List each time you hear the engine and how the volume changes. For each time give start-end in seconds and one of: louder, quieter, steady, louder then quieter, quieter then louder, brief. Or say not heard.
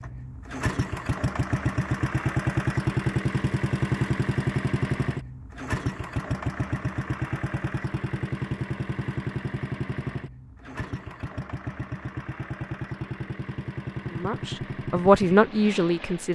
0.0-16.2 quieter.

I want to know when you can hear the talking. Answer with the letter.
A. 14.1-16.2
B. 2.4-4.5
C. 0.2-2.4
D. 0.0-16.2
A.